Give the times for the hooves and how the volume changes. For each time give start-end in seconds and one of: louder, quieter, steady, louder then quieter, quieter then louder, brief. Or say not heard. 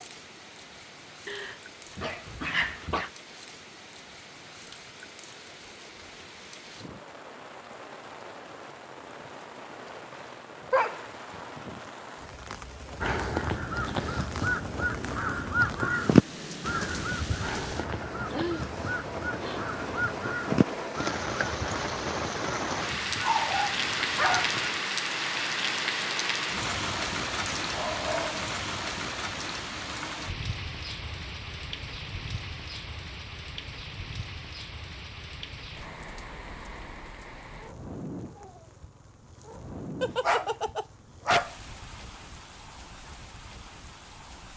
not heard.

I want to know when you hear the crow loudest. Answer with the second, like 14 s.
16 s.